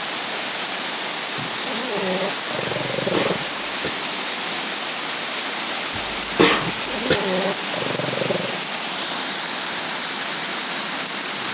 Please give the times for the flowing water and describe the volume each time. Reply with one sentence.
The flowing water can be heard from 0.0 to 11.4 s, at a steady volume.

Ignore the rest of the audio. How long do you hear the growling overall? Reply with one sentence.
You can hear the growling for 4 seconds altogether.